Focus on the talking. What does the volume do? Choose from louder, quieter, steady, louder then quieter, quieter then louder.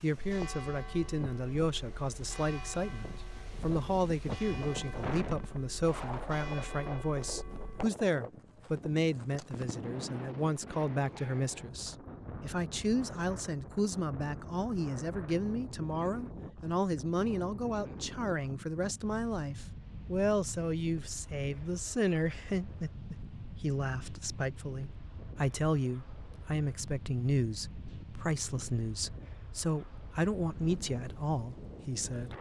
steady.